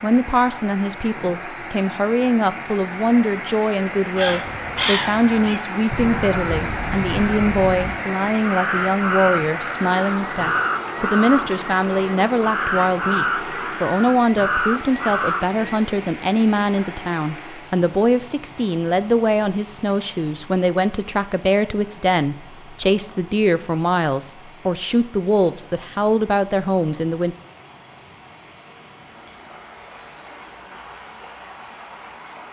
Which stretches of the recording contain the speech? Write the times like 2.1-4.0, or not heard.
0.0-27.4.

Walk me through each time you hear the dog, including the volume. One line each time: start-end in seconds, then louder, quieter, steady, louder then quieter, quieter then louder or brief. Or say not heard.
not heard.